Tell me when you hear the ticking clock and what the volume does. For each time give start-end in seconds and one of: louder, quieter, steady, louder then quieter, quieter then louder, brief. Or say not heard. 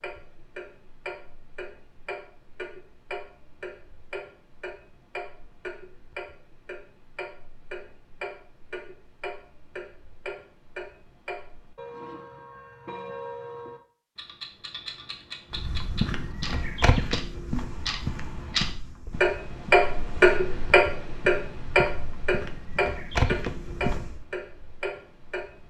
0.0-25.6 louder.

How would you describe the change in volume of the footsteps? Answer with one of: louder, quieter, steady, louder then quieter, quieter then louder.
quieter then louder.